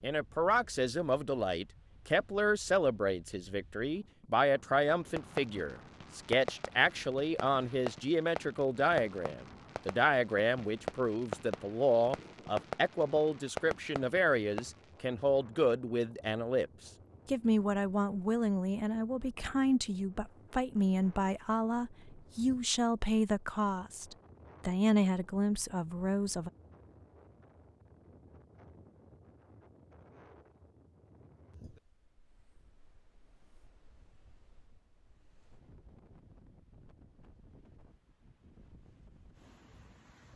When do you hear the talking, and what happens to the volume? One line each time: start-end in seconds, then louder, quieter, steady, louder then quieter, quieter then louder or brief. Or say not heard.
0.0-26.5 steady.